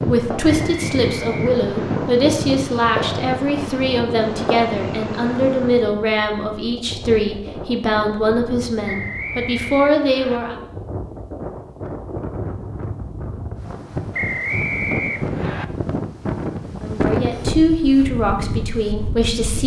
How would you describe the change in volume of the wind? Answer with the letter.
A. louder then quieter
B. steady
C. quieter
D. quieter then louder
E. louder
D.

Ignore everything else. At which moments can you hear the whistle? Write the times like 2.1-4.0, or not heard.
0.5-2.0, 8.8-10.4, 14.1-15.7.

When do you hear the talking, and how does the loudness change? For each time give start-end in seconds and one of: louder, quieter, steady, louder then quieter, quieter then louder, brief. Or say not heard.
0.0-10.6 steady
16.8-19.6 brief.